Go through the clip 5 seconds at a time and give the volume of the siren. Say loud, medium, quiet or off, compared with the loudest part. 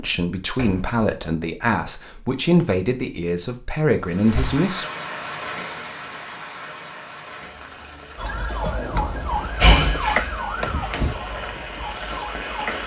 off, loud, loud.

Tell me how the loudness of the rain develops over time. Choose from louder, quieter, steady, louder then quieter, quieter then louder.
quieter then louder.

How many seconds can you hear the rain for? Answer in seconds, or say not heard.
9 s.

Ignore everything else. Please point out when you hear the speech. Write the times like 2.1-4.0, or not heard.
0.0-4.8.